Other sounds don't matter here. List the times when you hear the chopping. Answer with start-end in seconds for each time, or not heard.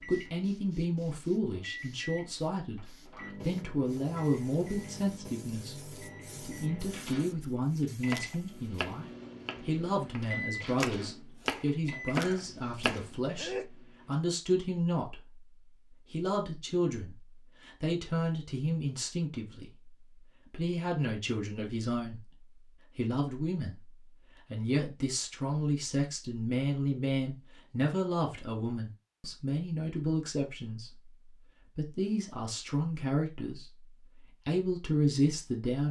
8.1-13.1.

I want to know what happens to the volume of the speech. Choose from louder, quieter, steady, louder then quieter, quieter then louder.
steady.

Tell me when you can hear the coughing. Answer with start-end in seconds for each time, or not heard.
12.1-13.7.